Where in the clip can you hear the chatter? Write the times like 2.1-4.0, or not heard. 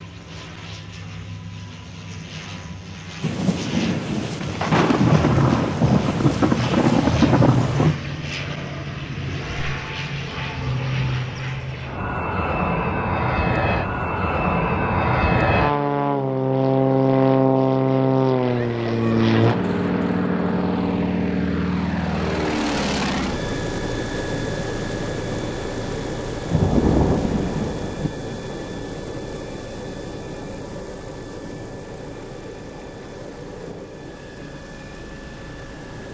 not heard.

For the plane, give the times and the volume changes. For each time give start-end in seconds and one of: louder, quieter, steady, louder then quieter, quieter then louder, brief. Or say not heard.
0.0-36.0 louder then quieter.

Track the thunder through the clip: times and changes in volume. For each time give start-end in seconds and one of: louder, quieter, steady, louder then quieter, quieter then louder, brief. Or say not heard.
3.2-8.0 louder
26.4-28.1 brief.